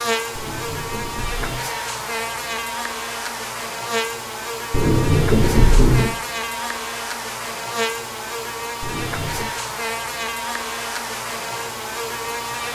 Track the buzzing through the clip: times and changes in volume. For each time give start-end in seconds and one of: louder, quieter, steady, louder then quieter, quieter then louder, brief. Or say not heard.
0.0-12.6 steady.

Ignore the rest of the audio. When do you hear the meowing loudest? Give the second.
5 s.